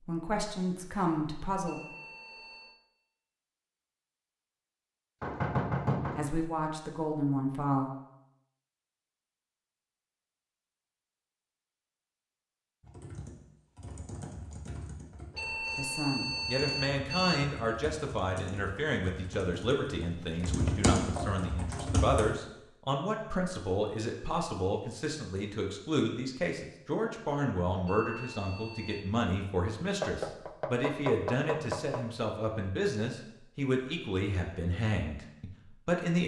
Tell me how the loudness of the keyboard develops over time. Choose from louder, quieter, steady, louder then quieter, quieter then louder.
louder.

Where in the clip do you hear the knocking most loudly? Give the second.
6 s.